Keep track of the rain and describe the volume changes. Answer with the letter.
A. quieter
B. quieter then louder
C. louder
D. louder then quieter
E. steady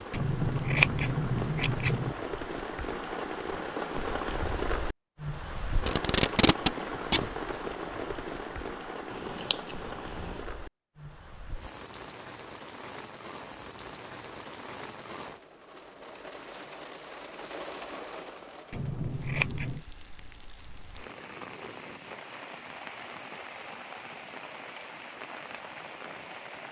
A.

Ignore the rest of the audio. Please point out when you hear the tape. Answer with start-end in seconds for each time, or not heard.
5.8-7.3.